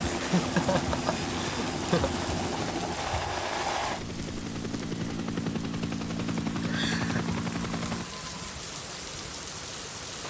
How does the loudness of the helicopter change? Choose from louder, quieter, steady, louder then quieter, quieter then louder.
steady.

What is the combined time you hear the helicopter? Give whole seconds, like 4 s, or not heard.
8 s.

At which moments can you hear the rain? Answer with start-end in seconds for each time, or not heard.
0.0-10.2.